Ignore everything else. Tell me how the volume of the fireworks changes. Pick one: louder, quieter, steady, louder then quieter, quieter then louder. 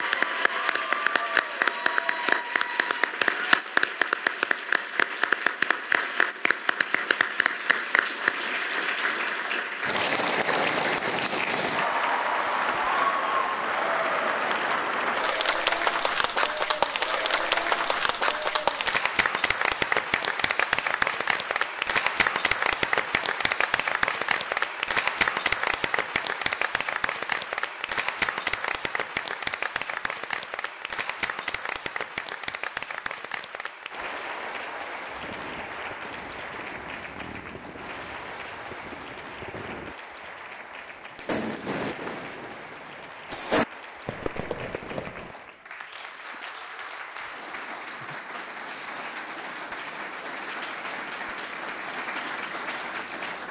louder.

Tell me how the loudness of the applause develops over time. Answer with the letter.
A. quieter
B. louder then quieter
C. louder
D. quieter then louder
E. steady
A.